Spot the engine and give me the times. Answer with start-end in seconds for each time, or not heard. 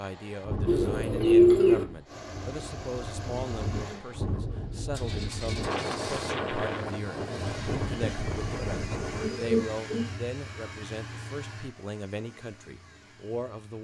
2.0-13.7.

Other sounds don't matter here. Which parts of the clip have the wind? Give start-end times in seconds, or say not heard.
0.0-9.4.